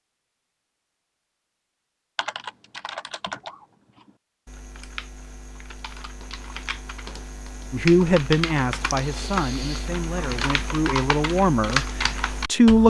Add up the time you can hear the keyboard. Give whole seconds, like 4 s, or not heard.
11 s.